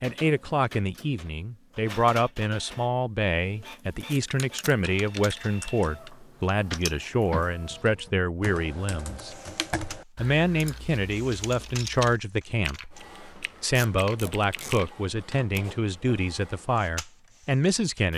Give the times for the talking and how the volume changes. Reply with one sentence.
The talking can be heard from 0.0 to 18.1 s, at a steady volume.